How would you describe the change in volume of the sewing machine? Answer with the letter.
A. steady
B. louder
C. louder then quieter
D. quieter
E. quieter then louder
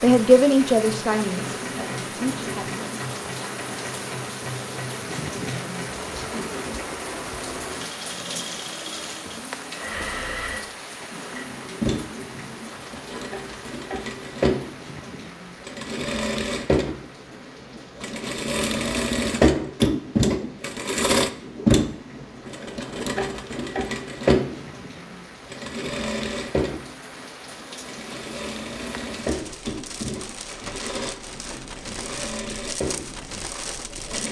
C.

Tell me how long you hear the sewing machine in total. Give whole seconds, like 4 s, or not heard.
34 s.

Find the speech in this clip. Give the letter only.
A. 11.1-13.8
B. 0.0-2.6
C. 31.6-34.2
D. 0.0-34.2
B.